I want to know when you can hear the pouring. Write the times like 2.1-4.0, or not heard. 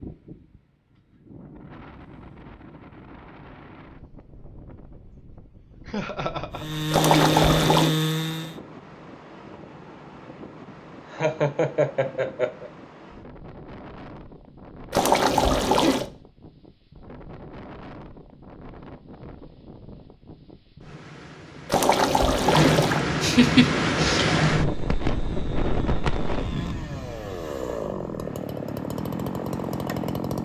6.9-8.0, 14.9-16.1, 21.6-23.1.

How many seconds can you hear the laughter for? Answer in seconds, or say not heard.
5 s.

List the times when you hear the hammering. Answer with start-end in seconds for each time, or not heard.
not heard.